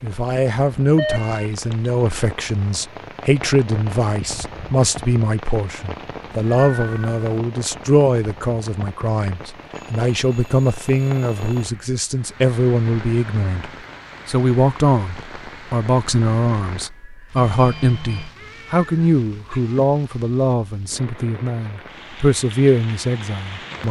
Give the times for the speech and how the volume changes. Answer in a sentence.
The speech can be heard from 0.0 to 23.8 s, at a steady volume.